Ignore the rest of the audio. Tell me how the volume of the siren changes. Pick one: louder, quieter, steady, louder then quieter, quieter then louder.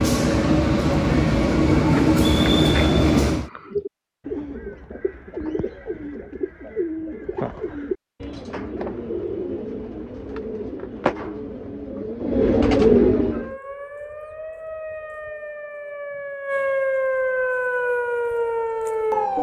louder.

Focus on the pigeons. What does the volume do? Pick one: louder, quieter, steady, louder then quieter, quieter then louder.
louder.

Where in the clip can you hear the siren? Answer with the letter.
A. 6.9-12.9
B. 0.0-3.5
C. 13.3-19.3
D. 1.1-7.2
C.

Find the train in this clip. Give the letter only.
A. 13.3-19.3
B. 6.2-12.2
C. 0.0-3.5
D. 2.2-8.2
C.